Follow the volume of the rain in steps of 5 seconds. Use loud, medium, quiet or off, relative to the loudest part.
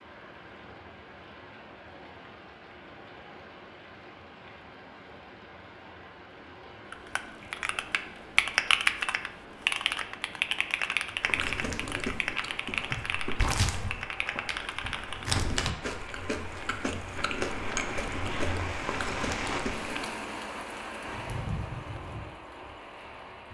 medium, medium, medium, loud, loud.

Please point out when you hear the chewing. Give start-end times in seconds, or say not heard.
11.2-20.1.